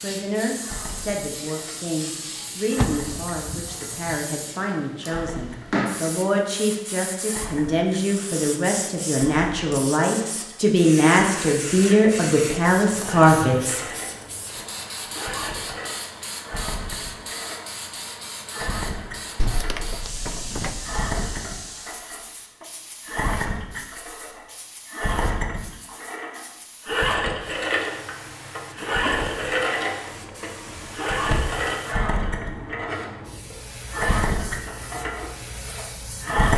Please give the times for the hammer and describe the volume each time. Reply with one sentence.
You can't hear the hammer here.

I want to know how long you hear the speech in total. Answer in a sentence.
You can hear the speech for 14 seconds altogether.